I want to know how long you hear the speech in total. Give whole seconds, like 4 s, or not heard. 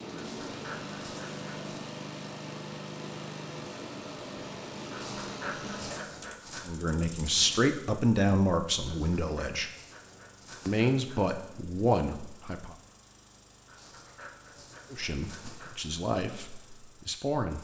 8 s.